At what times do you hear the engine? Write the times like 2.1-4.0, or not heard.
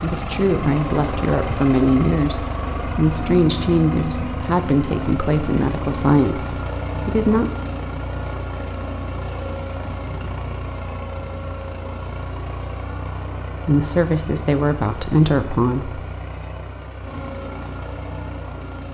0.0-18.8.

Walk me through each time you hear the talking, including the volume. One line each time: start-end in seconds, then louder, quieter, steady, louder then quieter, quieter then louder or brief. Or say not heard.
0.0-7.5 steady
13.7-16.0 brief.